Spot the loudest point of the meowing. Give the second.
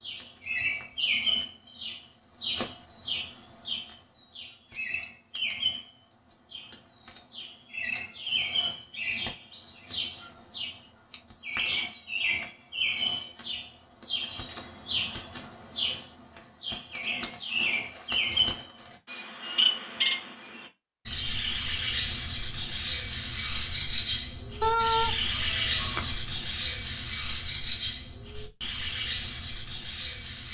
25 s.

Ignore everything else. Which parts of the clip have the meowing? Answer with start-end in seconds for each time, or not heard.
24.6-26.1.